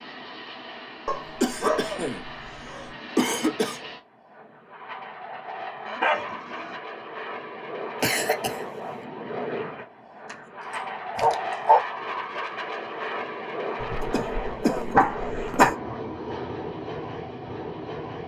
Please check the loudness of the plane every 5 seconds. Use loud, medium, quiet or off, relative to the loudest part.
medium, loud, loud, loud.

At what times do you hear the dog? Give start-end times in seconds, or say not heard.
1.1-2.9, 5.8-6.8, 10.3-11.8, 13.8-15.7.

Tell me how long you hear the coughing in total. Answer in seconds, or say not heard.
5 s.